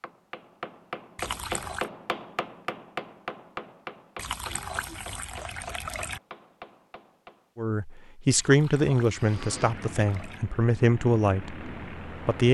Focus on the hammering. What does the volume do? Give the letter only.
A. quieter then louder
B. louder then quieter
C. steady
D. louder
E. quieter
E.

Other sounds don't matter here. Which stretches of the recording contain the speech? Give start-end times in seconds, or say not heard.
7.5-12.4.